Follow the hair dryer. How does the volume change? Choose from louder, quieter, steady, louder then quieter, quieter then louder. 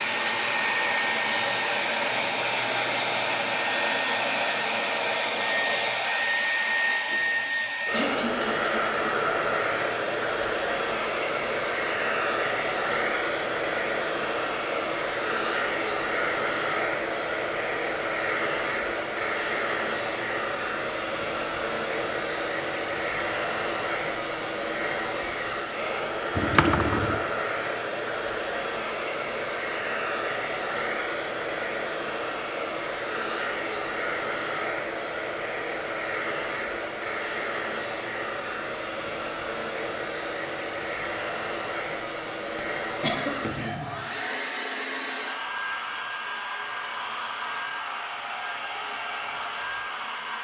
quieter.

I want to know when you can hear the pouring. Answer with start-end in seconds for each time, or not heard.
26.4-27.2.